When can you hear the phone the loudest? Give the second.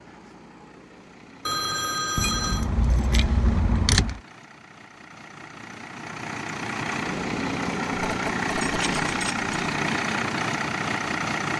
2 s.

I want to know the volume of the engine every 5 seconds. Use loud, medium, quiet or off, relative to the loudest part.
quiet, loud, loud.